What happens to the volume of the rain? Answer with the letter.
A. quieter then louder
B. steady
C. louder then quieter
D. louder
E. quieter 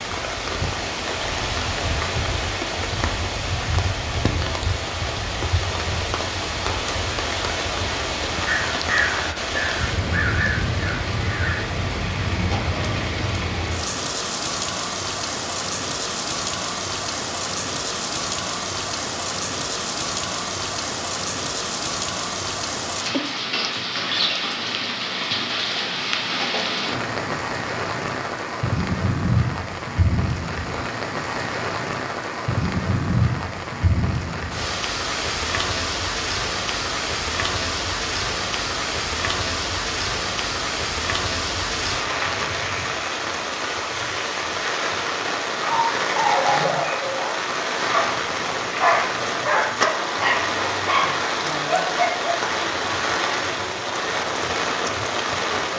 B.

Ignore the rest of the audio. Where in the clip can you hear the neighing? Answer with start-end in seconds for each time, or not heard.
not heard.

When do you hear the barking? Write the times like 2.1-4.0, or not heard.
45.7-52.4.